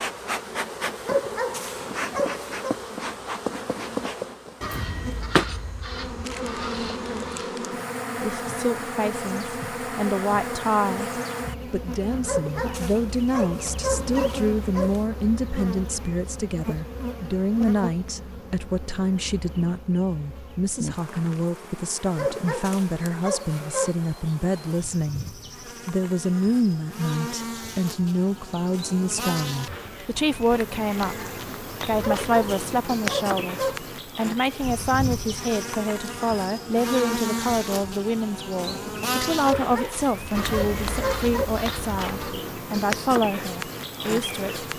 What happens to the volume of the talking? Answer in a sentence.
The loudness of the talking stays about the same.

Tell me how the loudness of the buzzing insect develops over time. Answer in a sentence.
The loudness of the buzzing insect goes down, then up.